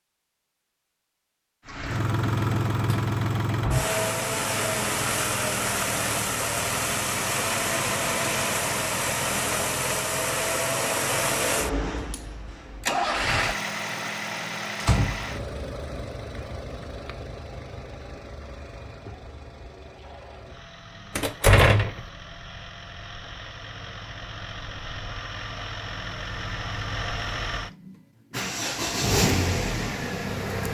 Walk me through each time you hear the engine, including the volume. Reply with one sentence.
The engine can be heard from 1.6 to 30.6 s, getting quieter then louder.